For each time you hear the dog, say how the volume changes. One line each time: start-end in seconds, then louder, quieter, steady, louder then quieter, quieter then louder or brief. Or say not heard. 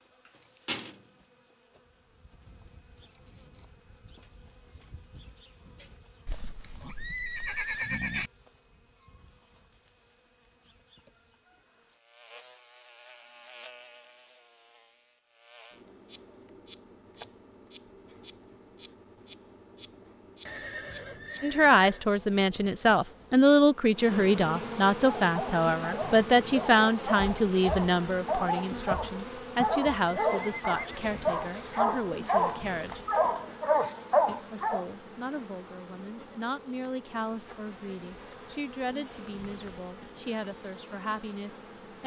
25.2-34.9 louder.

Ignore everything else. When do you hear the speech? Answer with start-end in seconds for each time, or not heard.
21.4-33.0, 34.2-42.0.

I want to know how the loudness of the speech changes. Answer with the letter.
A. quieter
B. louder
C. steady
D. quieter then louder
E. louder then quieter
A.